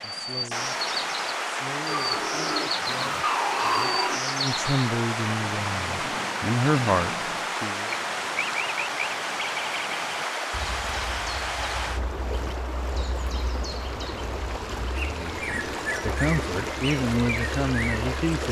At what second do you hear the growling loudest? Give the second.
4 s.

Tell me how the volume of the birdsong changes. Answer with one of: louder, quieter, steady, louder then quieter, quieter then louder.
quieter then louder.